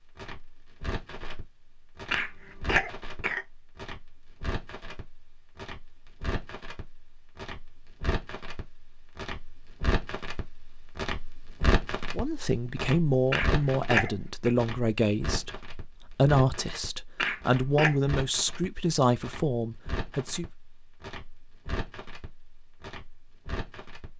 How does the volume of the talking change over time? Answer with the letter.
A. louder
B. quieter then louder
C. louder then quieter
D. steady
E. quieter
D.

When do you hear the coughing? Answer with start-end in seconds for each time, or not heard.
2.1-3.5, 13.3-14.5, 17.1-17.9.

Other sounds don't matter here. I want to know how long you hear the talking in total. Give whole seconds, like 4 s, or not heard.
8 s.